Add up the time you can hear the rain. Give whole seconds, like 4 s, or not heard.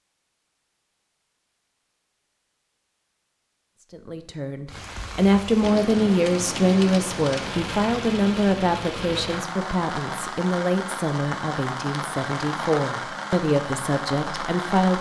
10 s.